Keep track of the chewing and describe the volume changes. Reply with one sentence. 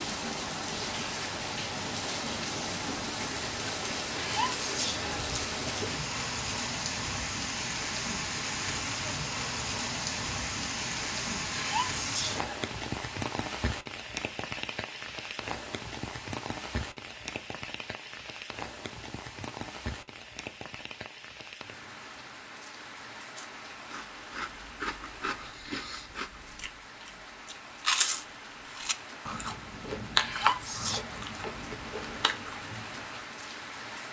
The loudness of the chewing goes up, then down.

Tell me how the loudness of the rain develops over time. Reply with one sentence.
The volume of the rain goes down.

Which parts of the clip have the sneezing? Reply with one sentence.
You can hear the sneezing from 4.2 to 5.9 s, from 11.5 to 12.5 s and from 30.2 to 31.1 s.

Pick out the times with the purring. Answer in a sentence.
The purring can't be heard in this clip.